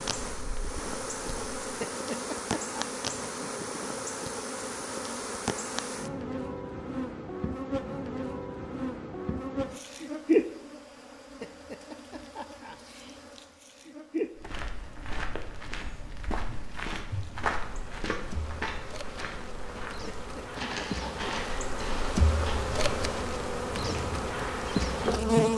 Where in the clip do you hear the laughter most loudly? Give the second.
2 s.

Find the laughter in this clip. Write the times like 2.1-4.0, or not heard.
1.8-2.9, 11.4-12.8, 20.1-21.3.